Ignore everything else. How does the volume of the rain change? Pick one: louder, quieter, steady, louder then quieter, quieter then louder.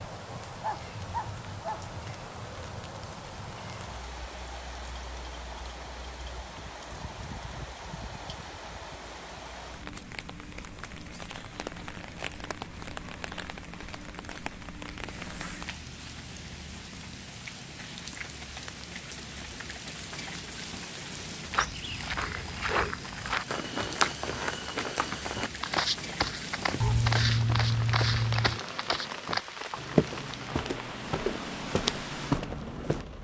steady.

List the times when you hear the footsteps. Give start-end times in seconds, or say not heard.
21.6-33.0.